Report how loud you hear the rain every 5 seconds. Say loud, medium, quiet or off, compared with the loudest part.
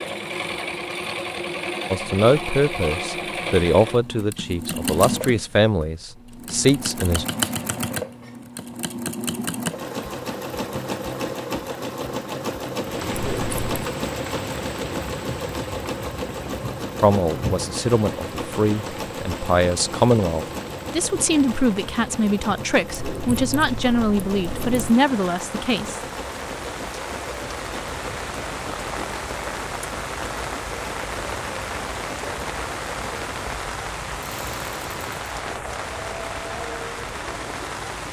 off, off, loud, medium, medium, loud, loud, loud.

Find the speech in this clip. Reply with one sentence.
The speech can be heard from 1.9 to 7.2 s and from 17.0 to 26.0 s.